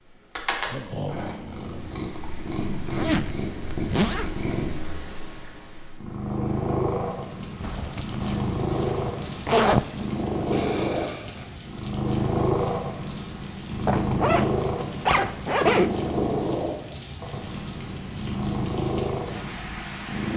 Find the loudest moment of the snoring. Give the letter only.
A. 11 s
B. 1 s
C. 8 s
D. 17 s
B.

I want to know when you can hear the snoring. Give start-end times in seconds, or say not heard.
0.6-2.0, 10.5-11.6.